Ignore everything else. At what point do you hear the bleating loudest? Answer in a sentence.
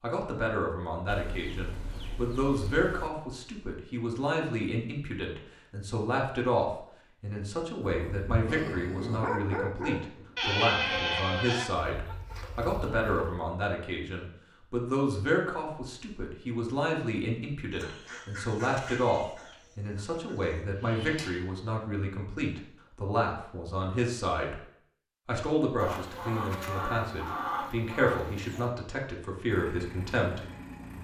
The volume of the bleating peaks at 11 seconds.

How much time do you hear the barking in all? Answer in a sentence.
The barking can be heard for 3 seconds in total.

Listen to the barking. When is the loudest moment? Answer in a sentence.
The volume of the barking peaks at 9 seconds.